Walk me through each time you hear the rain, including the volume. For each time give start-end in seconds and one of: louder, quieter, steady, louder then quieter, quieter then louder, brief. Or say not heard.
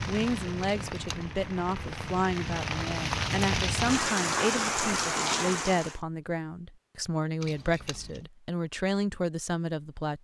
0.0-6.0 louder.